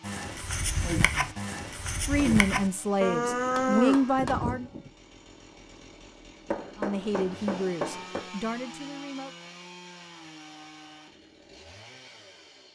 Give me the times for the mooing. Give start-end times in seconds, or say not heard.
0.0-4.9.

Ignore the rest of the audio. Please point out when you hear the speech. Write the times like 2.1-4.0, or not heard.
2.0-4.7, 6.8-9.3.